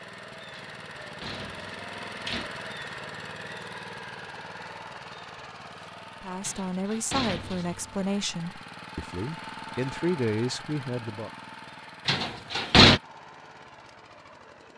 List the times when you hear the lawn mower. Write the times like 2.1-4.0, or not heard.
0.0-14.7.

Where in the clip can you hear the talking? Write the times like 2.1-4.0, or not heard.
6.2-11.3.